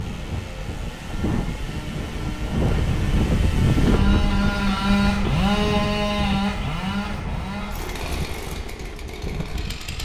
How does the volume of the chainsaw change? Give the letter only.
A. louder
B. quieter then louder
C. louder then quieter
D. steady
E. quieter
C.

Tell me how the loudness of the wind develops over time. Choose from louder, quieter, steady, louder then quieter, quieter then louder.
louder then quieter.